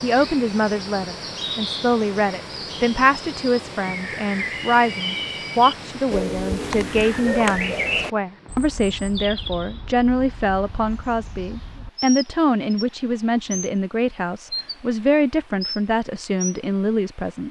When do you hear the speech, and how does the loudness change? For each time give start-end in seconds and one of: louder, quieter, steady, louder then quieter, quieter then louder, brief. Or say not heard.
0.0-17.4 steady.